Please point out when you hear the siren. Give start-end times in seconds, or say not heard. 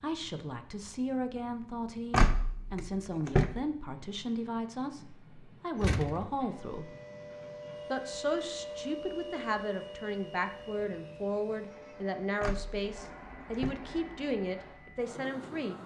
6.5-13.2.